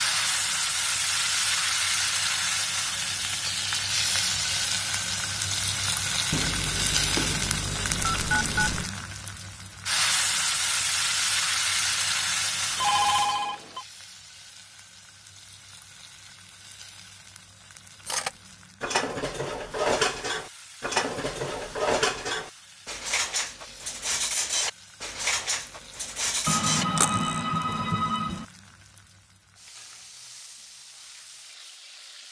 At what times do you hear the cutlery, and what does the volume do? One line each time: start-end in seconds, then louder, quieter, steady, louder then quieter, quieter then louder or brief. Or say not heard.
18.1-27.4 steady.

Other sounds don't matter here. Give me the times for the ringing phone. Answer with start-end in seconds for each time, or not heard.
6.3-8.9, 12.8-13.8, 26.4-28.4.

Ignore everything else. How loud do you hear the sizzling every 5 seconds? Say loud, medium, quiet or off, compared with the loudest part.
loud, loud, loud, quiet, quiet, quiet, quiet.